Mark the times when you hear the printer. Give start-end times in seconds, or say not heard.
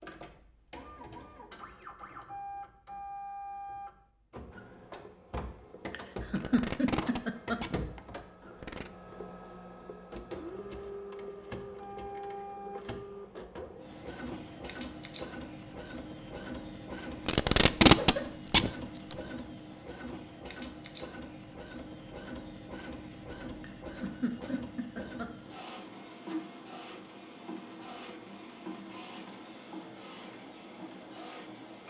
0.0-31.8.